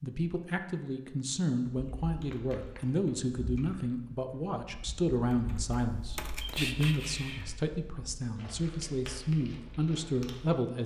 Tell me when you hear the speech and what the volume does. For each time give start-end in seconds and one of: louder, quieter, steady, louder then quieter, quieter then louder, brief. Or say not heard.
0.0-10.8 steady.